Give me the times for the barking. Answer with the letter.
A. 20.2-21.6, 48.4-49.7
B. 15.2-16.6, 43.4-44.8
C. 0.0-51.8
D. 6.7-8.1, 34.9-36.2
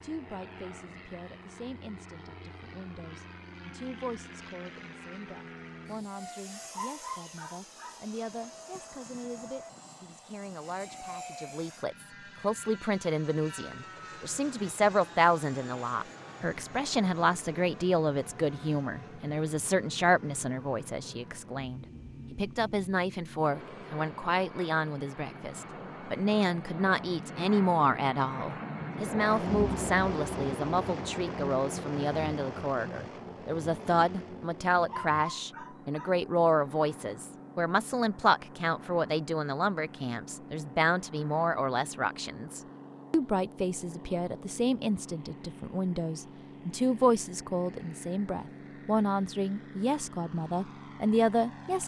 D.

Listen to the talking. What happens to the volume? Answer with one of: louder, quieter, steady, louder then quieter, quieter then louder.
louder.